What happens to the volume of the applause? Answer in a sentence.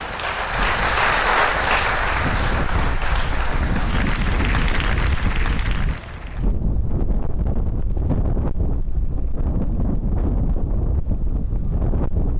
The volume of the applause goes down.